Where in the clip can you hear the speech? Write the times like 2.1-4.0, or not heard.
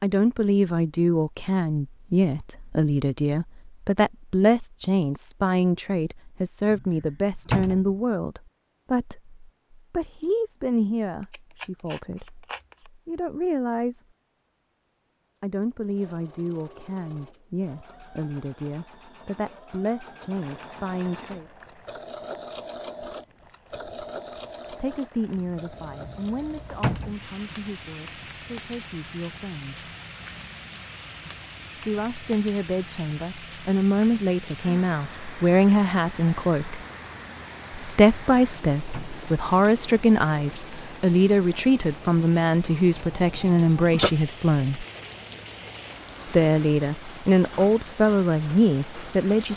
0.0-14.1, 15.4-21.4, 24.7-29.9, 31.8-36.8, 37.7-44.9, 46.3-49.5.